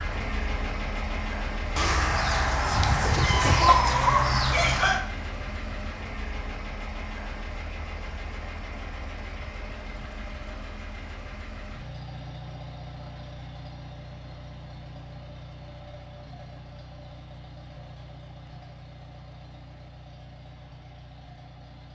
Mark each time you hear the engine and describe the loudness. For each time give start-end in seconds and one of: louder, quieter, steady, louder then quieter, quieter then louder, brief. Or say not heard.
0.0-21.9 quieter.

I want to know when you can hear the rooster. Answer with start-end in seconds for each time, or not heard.
1.8-5.0.